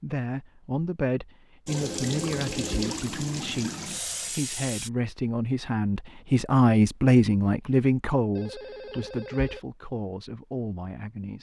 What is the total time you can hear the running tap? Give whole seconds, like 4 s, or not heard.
3 s.